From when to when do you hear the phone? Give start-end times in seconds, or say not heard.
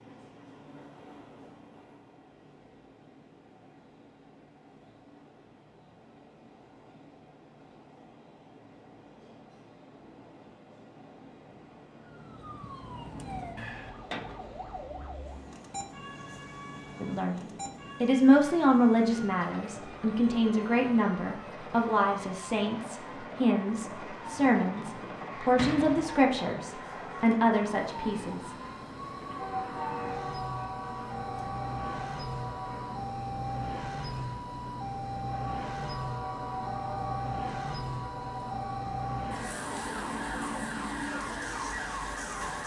not heard.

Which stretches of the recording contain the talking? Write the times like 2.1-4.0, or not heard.
17.0-28.5.